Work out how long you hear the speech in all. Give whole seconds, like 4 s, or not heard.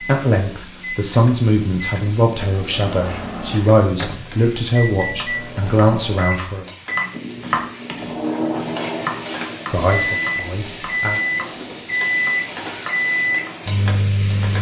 8 s.